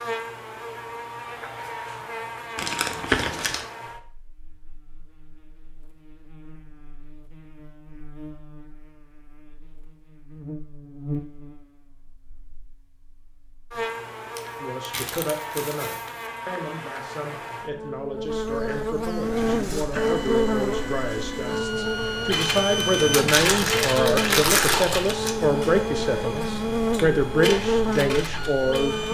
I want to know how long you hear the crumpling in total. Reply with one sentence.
The crumpling can be heard for 5 seconds in total.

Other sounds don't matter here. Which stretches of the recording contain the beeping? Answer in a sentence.
You can't hear the beeping here.